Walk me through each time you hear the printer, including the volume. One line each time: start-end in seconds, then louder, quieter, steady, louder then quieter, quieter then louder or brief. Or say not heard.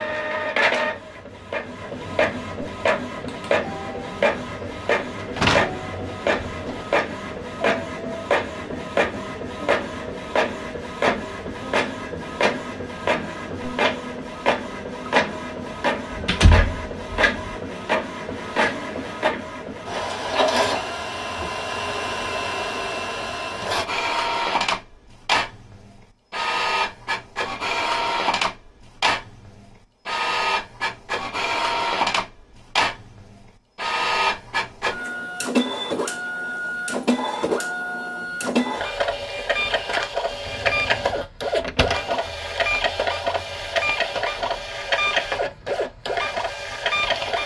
0.0-47.4 steady.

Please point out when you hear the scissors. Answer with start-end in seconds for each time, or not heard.
not heard.